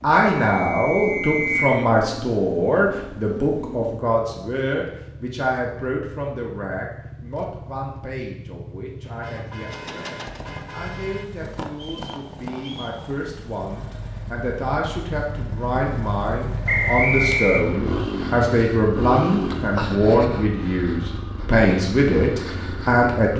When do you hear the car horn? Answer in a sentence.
The car horn can be heard from 9.0 to 11.2 s.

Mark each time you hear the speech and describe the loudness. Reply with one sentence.
The speech can be heard from 0.0 to 23.3 s, getting quieter then louder.